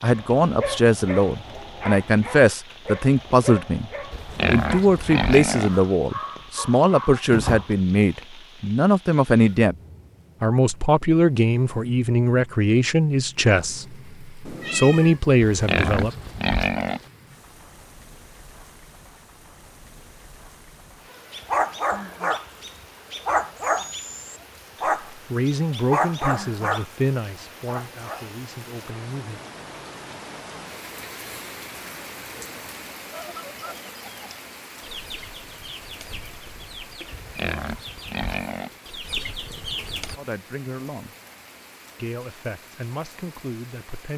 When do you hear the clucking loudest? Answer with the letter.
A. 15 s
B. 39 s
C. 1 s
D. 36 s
B.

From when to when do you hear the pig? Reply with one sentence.
You can hear the pig from 4.1 to 5.8 s, from 15.4 to 17.1 s and from 37.1 to 38.8 s.